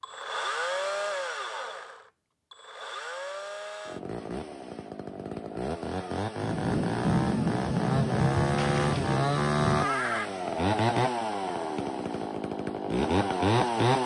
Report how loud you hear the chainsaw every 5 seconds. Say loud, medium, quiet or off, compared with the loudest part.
medium, loud, loud.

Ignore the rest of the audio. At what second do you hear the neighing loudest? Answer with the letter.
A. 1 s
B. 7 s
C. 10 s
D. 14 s
C.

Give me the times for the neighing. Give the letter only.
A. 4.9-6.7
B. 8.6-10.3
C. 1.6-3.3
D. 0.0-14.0
B.